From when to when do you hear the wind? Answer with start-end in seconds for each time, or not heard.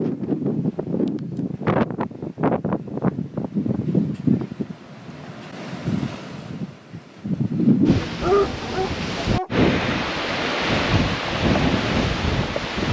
0.0-12.8.